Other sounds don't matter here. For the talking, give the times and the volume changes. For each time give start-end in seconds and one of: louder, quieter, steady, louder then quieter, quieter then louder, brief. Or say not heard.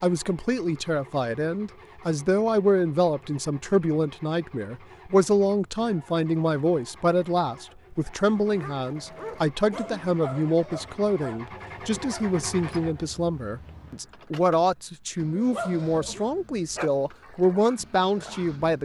0.0-18.8 steady.